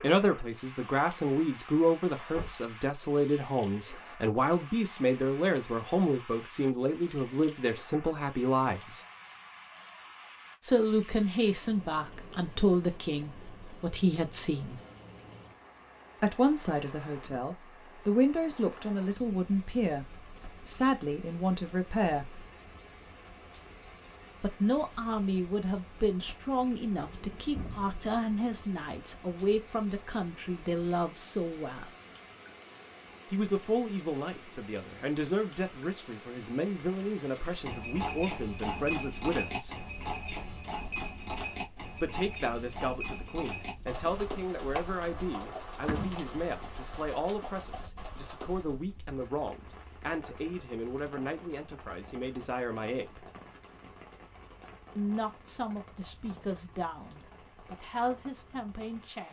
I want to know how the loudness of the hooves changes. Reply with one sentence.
The volume of the hooves goes down.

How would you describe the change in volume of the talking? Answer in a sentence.
The loudness of the talking goes down.